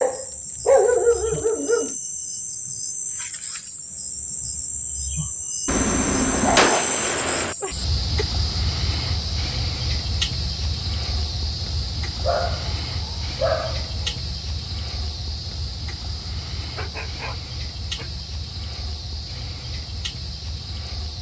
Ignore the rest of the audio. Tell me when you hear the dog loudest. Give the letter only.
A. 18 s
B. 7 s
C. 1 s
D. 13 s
C.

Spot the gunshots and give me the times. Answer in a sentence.
The gunshots can be heard from 5.7 to 7.5 s.